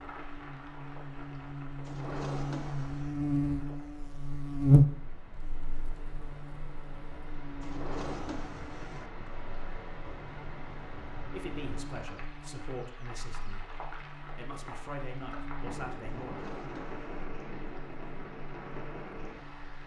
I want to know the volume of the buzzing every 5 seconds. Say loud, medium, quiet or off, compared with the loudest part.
loud, quiet, quiet, quiet.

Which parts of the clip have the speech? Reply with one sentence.
You can hear the speech from 11.3 to 13.7 s and from 14.3 to 16.5 s.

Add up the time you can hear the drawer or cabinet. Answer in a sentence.
The drawer or cabinet can be heard for 4 seconds in total.